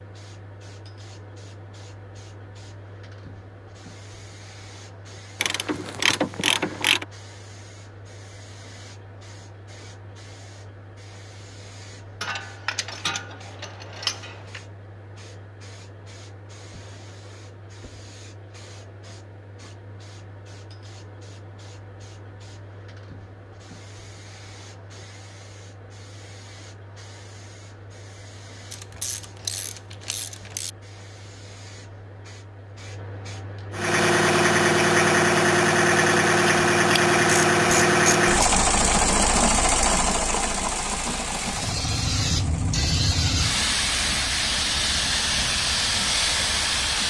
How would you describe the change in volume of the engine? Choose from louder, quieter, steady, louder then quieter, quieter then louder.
quieter.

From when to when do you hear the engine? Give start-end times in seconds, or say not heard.
33.7-47.0.